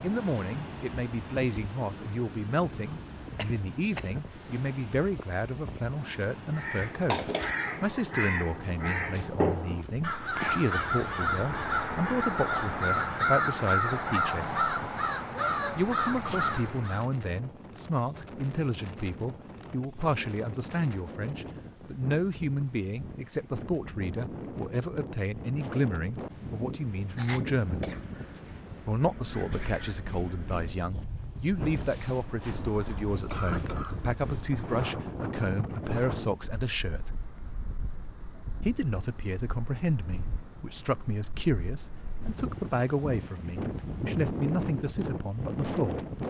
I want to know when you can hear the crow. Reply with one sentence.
You can hear the crow from 6.5 to 17.1 s.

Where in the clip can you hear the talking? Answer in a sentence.
You can hear the talking from 0.0 to 14.6 s, from 15.8 to 27.9 s, from 28.9 to 37.2 s and from 38.6 to 46.0 s.